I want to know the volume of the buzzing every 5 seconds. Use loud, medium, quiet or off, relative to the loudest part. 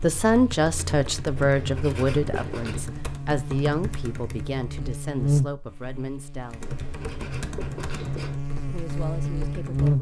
medium, loud.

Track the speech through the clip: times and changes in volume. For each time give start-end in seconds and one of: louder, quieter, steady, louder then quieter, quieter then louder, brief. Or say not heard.
0.0-6.7 quieter
8.7-9.9 brief.